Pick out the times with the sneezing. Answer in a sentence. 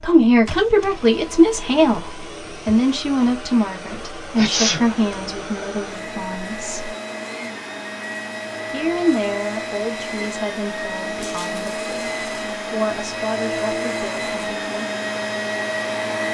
The sneezing can be heard from 4.3 to 4.8 s.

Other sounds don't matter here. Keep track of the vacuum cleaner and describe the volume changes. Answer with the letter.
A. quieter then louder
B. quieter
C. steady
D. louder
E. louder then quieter
D.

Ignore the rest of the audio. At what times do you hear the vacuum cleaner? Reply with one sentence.
The vacuum cleaner can be heard from 0.0 to 16.2 s.